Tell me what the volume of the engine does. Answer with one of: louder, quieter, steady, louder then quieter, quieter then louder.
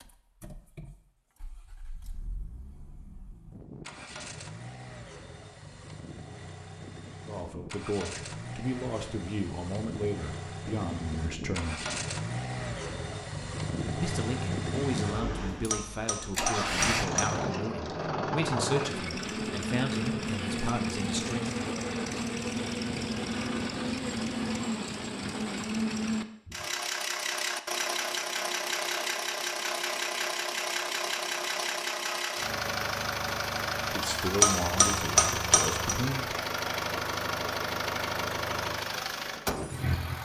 louder.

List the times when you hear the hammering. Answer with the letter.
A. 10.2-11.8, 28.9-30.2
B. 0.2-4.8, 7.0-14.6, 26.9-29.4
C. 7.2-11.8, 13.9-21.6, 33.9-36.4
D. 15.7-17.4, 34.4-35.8
D.